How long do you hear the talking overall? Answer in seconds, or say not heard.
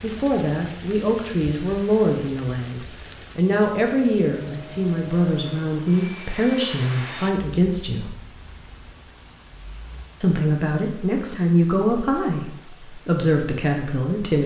12 s.